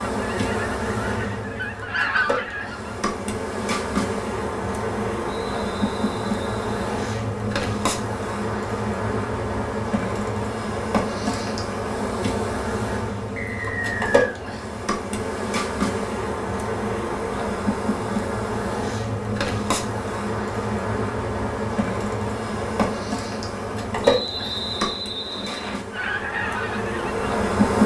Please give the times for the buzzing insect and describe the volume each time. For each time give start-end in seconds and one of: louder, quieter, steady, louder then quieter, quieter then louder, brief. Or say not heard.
0.0-27.8 steady.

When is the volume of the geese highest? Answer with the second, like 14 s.
2 s.